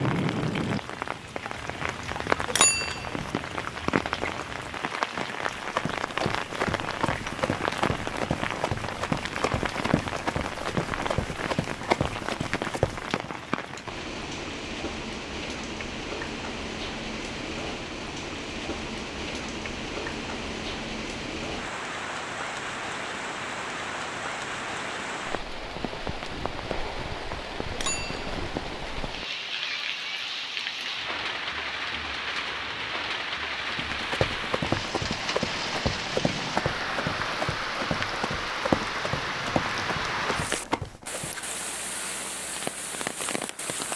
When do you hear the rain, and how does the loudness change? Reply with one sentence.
You can hear the rain from 0.0 to 43.9 s, at a steady volume.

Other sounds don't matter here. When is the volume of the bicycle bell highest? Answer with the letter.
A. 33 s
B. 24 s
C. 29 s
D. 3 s
D.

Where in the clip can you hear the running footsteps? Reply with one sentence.
The running footsteps can be heard from 5.4 to 13.3 s and from 33.6 to 41.3 s.